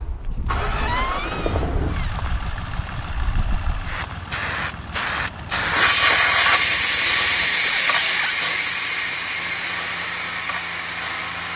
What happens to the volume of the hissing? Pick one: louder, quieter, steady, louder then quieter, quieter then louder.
louder then quieter.